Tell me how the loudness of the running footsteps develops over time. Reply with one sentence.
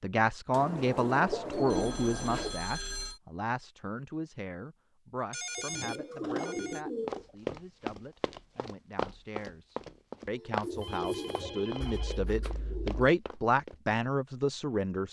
The loudness of the running footsteps goes down.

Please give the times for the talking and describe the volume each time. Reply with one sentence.
You can hear the talking from 0.0 to 15.0 s, getting quieter then louder.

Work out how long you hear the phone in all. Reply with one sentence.
You can hear the phone for 5 seconds altogether.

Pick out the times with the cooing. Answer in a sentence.
The cooing can be heard from 0.5 to 2.5 s, from 5.5 to 7.3 s and from 10.6 to 13.1 s.